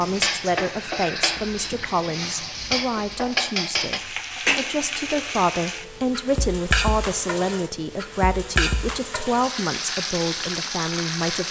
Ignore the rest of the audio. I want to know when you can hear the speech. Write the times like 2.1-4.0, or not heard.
0.0-11.4.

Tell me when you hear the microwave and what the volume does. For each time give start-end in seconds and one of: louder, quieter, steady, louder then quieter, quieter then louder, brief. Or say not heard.
not heard.